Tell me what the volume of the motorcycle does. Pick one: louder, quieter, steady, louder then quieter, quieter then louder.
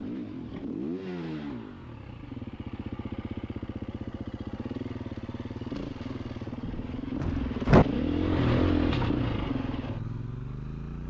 louder.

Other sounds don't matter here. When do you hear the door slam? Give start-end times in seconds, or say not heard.
6.7-7.8.